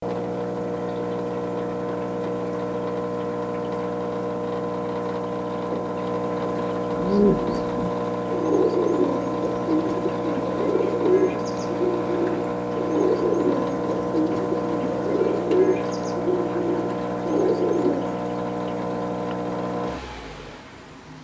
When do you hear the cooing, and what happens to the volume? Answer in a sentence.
The cooing can be heard from 6.9 to 18.1 s, at a steady volume.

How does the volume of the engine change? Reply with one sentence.
The loudness of the engine stays about the same.